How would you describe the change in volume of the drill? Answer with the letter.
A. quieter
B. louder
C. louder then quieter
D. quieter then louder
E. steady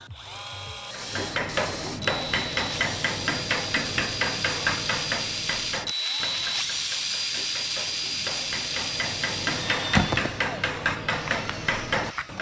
B.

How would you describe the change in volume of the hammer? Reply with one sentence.
The volume of the hammer goes down, then up.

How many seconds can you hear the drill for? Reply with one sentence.
The drill can be heard for 12 seconds in total.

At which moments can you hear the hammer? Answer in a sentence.
You can hear the hammer from 0.9 to 12.3 s.